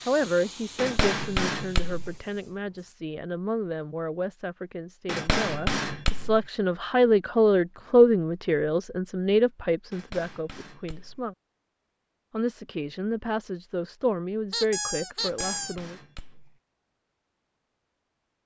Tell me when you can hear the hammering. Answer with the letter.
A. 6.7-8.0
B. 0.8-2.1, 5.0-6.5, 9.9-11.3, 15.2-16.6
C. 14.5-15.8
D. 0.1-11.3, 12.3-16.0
B.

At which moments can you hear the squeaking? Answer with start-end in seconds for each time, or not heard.
14.5-15.8.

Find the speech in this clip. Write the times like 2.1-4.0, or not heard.
0.1-11.3, 12.3-16.0.